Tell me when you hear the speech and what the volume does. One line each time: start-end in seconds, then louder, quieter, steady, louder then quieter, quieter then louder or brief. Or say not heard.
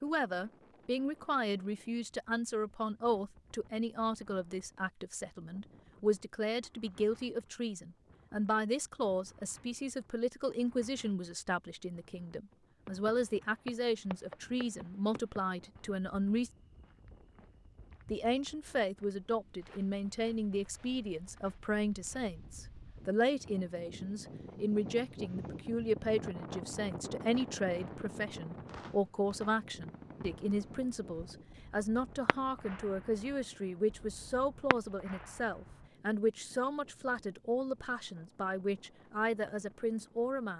0.0-16.5 steady
18.1-40.5 steady.